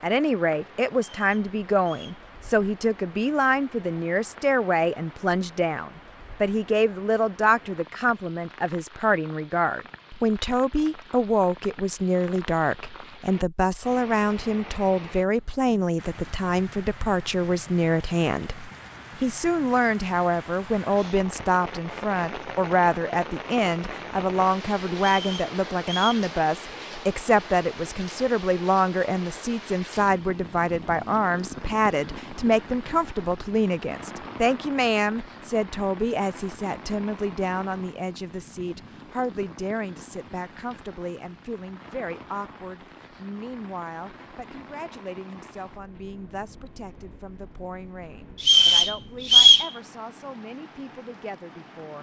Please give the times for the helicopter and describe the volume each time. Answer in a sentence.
You can't hear the helicopter here.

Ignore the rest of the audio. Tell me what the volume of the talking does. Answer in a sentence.
The volume of the talking goes down.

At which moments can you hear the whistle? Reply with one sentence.
The whistle can be heard from 1.1 to 2.2 s, from 24.9 to 26.2 s and from 48.4 to 49.7 s.